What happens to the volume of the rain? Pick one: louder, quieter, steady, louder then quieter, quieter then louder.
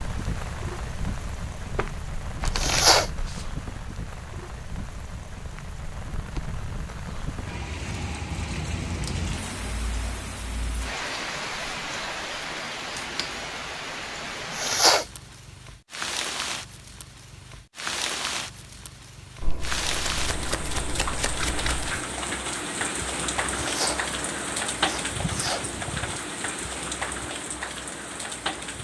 louder.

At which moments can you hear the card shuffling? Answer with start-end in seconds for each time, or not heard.
1.7-3.5, 12.9-13.4, 19.4-22.1.